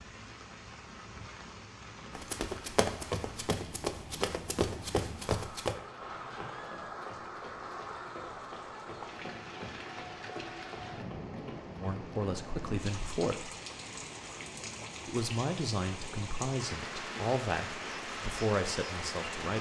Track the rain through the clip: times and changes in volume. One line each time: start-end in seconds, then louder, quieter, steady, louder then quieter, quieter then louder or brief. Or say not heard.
0.0-19.5 louder.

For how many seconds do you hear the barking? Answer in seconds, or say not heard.
not heard.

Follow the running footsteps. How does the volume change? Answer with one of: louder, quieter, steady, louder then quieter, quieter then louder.
quieter.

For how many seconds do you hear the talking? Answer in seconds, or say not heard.
6 s.